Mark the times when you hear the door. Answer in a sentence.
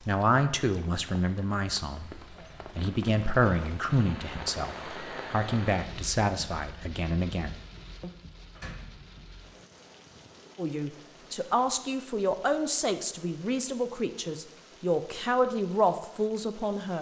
The door can be heard from 8.6 to 9.2 s.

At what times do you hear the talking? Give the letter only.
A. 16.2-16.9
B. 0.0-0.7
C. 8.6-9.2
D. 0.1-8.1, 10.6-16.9
D.